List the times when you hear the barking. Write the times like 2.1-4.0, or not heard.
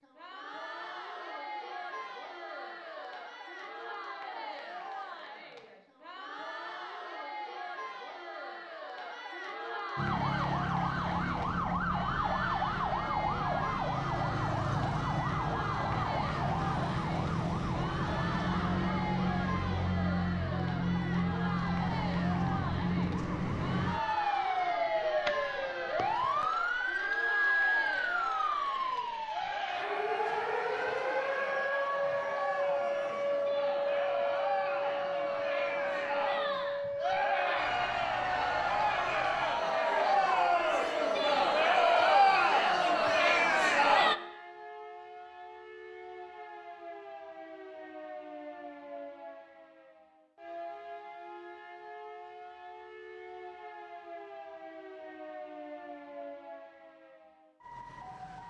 not heard.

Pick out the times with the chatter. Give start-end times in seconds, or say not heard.
0.0-44.1.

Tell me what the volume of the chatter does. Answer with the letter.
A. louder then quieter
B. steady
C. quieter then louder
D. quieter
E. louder
E.